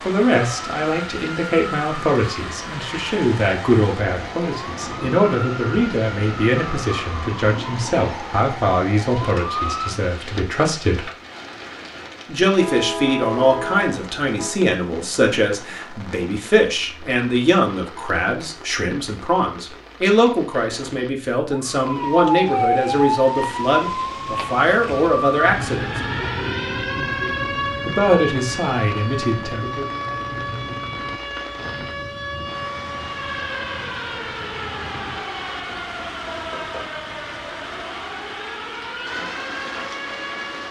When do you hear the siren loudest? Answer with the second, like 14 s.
23 s.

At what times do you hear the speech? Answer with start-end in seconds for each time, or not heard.
0.1-11.1, 12.2-25.9, 27.9-29.9.